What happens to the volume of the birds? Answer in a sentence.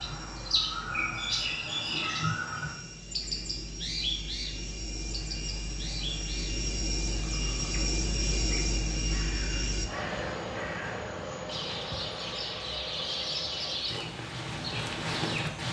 The volume of the birds goes down, then up.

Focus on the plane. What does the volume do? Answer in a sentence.
The volume of the plane goes up, then down.